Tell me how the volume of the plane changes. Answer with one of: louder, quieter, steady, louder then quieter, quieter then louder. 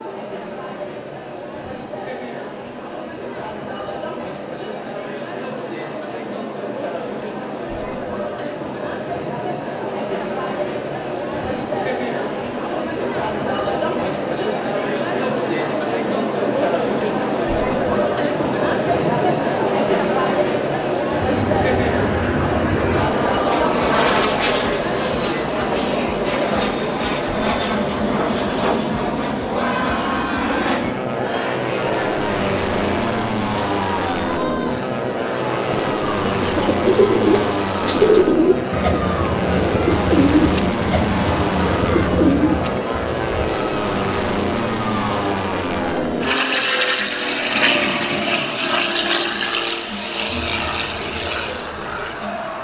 steady.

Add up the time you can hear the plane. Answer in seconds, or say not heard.
31 s.